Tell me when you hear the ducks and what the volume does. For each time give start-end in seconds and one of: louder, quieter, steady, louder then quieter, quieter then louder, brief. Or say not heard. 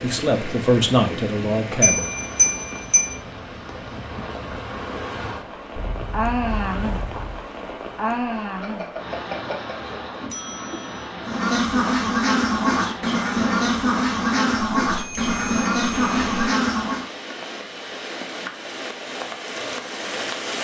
11.2-17.1 steady.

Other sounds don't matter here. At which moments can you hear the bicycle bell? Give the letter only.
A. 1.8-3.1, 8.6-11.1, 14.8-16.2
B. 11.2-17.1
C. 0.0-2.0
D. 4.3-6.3
A.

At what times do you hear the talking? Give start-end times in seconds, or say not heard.
0.0-2.0.